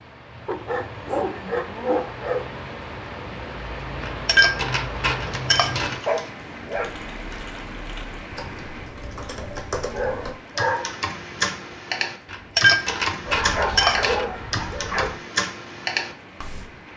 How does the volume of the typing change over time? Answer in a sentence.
The loudness of the typing goes up.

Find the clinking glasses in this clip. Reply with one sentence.
The clinking glasses can be heard from 4.0 to 6.0 s and from 12.3 to 14.2 s.